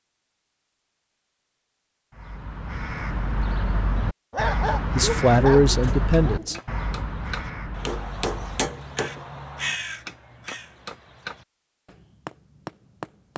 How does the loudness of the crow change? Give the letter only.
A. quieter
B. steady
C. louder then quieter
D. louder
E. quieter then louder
E.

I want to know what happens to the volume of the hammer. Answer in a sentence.
The volume of the hammer goes up, then down.